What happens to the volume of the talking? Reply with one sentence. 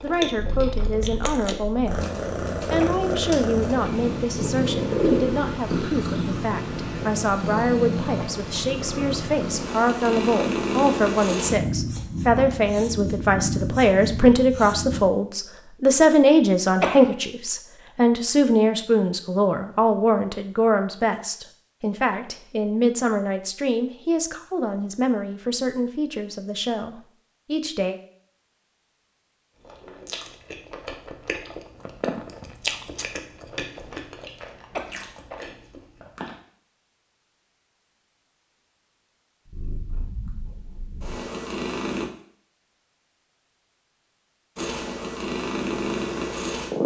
The volume of the talking goes up, then down.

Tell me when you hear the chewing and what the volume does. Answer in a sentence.
The chewing can be heard briefly from 0.0 to 1.6 s; and from 29.6 to 36.4 s, getting louder then quieter.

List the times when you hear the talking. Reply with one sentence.
You can hear the talking from 0.0 to 28.0 s.